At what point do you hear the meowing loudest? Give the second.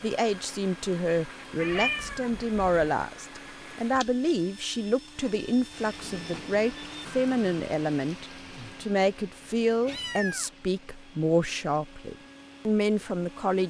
2 s.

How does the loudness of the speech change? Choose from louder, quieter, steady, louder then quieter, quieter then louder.
steady.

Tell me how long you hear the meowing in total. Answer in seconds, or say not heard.
3 s.